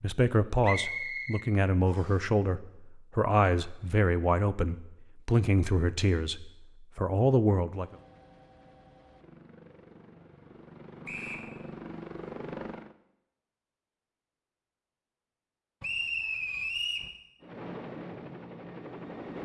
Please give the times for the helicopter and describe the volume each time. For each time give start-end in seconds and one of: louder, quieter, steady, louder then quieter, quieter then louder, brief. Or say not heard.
7.7-12.9 louder
17.4-19.4 brief.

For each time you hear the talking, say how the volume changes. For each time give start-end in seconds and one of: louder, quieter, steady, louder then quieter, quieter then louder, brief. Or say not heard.
0.0-8.0 steady.